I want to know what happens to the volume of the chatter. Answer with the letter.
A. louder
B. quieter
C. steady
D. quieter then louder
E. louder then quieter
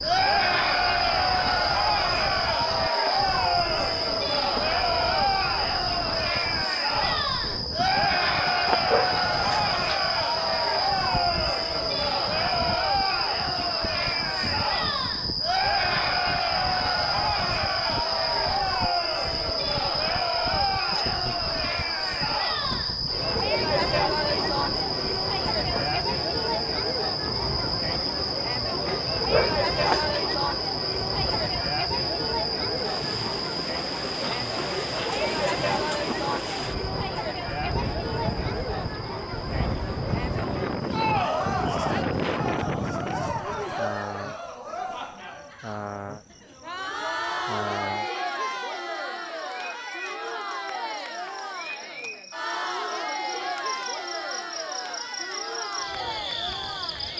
B.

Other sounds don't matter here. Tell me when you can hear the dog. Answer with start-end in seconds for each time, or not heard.
8.4-9.8, 28.9-30.4.